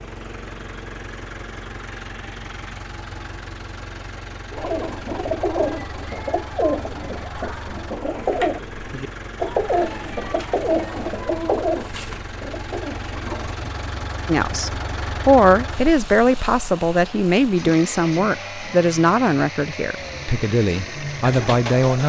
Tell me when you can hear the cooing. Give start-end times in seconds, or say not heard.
4.5-13.6, 19.9-22.0.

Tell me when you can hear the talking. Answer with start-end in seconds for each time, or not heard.
14.2-22.0.